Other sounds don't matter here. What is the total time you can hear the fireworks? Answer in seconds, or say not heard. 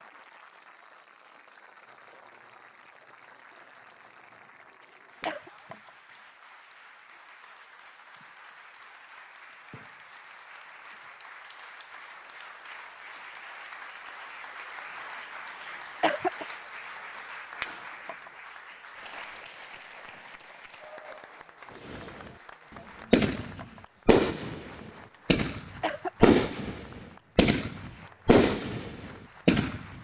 7 s.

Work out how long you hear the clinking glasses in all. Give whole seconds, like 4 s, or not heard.
2 s.